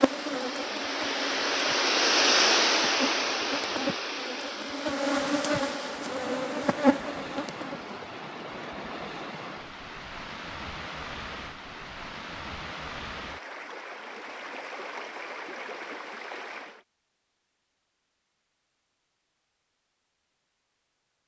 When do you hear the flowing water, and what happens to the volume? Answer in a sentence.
You can hear the flowing water from 0.0 to 16.9 s, getting quieter.